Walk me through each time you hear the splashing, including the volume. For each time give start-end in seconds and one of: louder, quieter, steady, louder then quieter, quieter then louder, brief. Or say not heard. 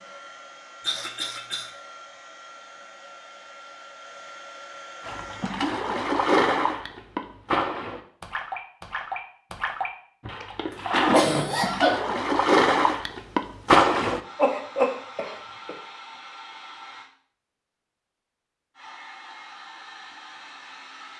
5.0-14.2 quieter then louder.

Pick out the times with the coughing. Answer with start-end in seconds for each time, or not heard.
0.8-1.7, 10.7-12.0, 14.3-15.8.